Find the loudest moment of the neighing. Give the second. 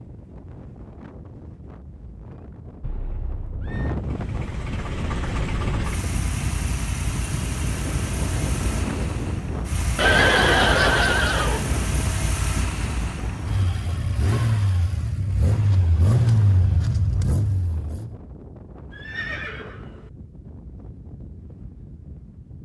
10 s.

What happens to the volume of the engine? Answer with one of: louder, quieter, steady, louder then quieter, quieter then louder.
louder.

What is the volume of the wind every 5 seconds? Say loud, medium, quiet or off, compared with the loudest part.
medium, loud, loud, medium, quiet.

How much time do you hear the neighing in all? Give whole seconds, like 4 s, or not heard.
4 s.